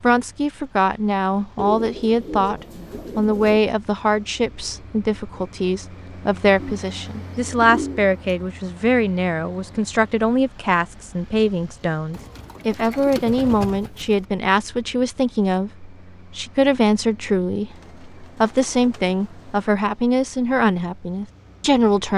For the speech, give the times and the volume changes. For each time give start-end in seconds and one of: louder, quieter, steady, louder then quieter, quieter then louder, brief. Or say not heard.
0.0-22.1 steady.